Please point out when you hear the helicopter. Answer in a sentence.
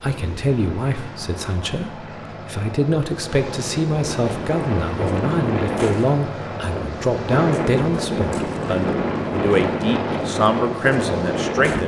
The helicopter can be heard from 0.0 to 11.6 s.